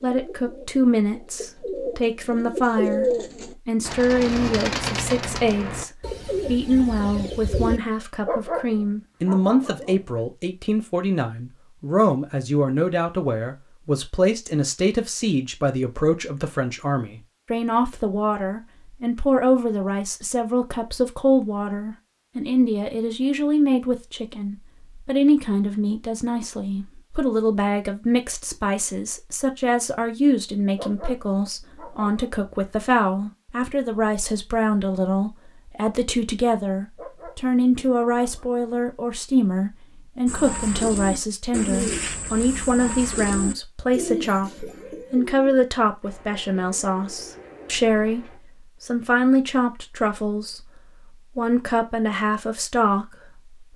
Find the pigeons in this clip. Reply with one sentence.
You can hear the pigeons from 0.0 to 7.8 s and from 40.2 to 48.4 s.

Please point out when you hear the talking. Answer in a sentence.
The talking can be heard from 0.0 to 3.0 s, from 3.6 to 50.7 s and from 51.4 to 53.7 s.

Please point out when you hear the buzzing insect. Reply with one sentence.
You can't hear the buzzing insect here.